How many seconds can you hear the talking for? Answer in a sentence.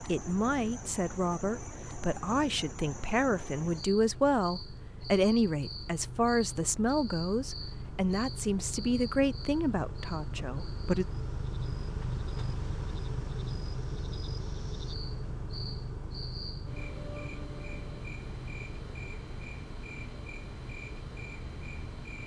The talking can be heard for 11 seconds in total.